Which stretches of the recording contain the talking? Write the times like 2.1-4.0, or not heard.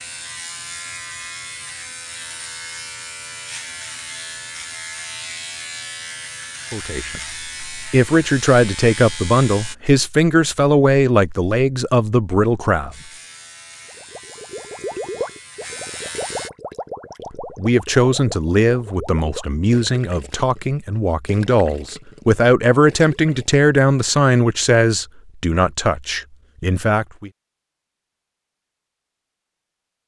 6.7-12.9, 17.4-27.3.